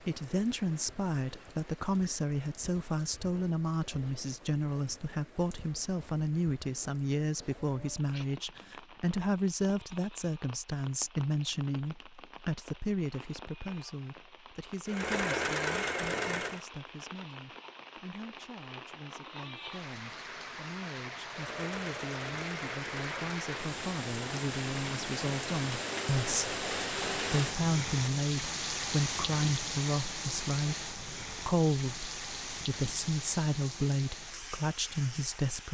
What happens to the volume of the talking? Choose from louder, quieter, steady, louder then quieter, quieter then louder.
quieter then louder.